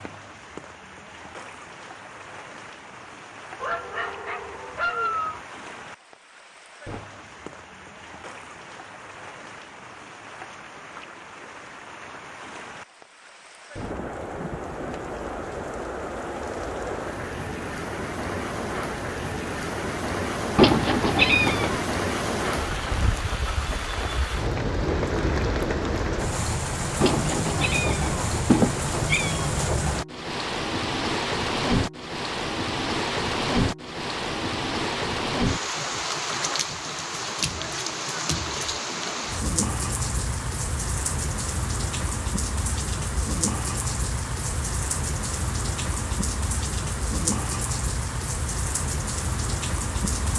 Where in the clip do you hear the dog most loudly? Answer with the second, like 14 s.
5 s.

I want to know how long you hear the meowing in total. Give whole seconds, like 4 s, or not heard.
4 s.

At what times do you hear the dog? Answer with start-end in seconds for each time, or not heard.
3.6-5.4.